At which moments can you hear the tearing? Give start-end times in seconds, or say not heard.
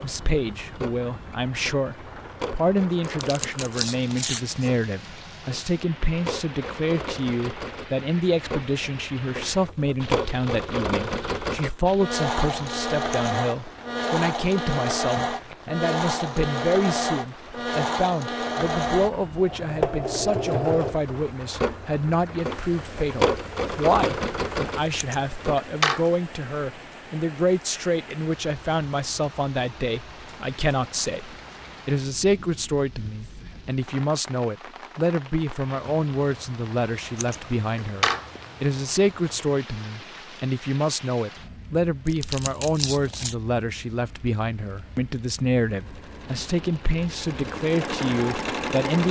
3.0-4.7, 42.0-43.4.